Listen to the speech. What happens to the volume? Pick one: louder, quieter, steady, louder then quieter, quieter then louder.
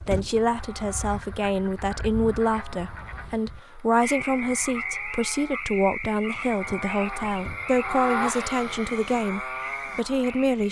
steady.